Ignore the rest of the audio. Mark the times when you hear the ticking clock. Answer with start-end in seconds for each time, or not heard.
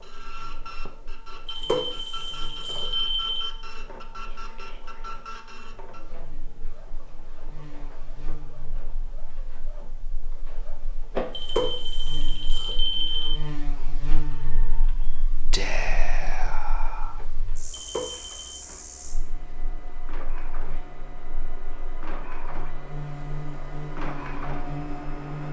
not heard.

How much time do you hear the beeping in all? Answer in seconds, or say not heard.
5 s.